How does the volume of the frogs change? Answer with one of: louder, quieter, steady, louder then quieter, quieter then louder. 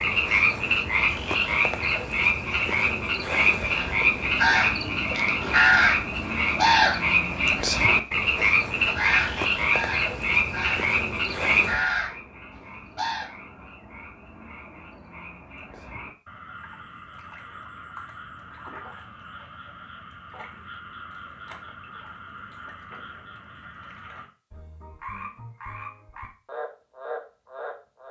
quieter.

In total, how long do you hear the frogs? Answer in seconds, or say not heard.
28 s.